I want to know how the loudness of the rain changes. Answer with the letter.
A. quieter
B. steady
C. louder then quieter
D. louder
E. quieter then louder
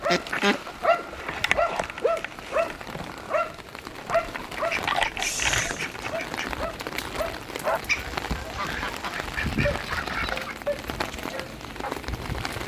D.